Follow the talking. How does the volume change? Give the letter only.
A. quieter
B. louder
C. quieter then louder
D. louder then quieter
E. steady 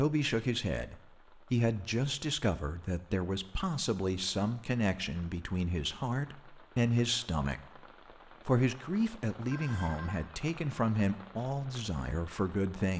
E.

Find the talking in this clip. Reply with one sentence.
You can hear the talking from 0.0 to 7.6 s and from 8.4 to 12.9 s.